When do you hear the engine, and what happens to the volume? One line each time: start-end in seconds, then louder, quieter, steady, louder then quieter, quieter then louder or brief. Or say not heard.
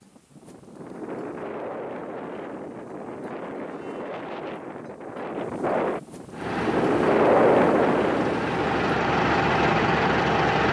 6.3-10.6 louder.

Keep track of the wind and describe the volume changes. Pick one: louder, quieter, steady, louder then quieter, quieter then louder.
louder.